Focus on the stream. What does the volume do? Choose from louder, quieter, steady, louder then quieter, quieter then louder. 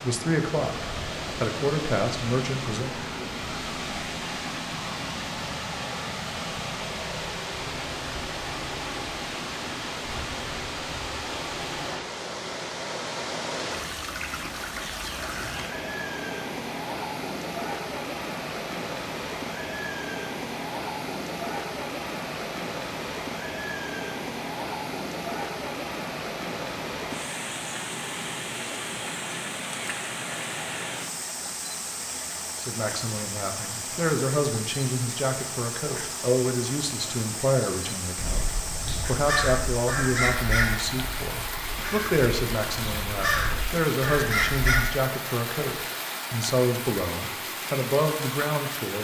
steady.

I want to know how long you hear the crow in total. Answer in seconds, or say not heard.
7 s.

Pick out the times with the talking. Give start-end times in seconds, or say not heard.
0.0-3.0, 32.6-48.9.